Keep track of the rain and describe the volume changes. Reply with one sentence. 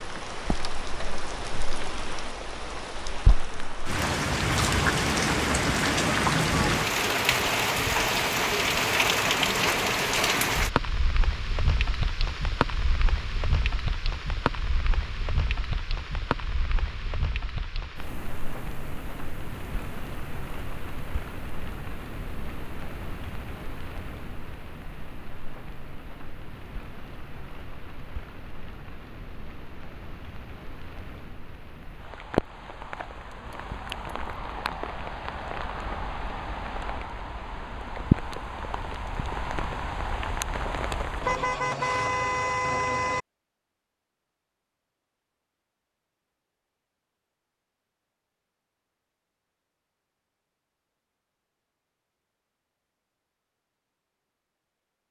The volume of the rain goes down, then up.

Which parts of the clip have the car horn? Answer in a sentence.
The car horn can be heard from 41.2 to 43.2 s.